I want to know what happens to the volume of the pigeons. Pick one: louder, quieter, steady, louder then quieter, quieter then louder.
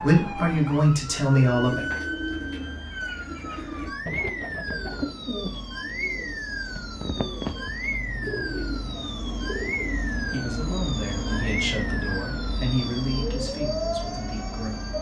steady.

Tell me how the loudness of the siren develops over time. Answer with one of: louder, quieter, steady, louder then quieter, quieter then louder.
steady.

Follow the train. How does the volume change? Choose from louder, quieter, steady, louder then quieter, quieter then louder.
louder.